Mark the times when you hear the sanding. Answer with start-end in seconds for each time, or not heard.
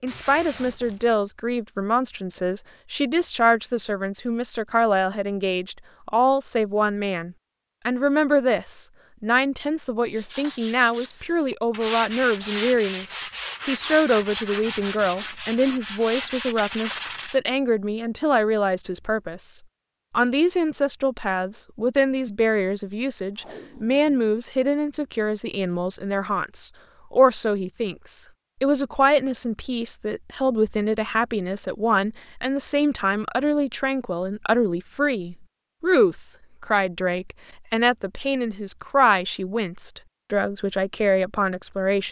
10.2-17.4.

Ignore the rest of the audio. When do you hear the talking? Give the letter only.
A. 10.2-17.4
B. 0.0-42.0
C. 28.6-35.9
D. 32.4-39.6
B.